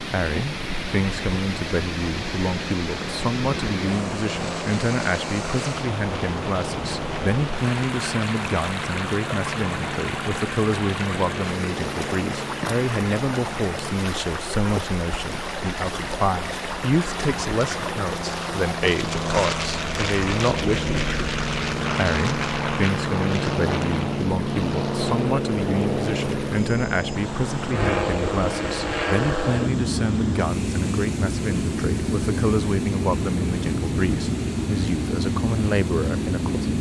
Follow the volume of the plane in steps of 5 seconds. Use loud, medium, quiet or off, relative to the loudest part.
medium, medium, medium, medium, loud, loud, loud, loud.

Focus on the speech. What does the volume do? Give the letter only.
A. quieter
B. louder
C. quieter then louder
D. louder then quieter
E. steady
E.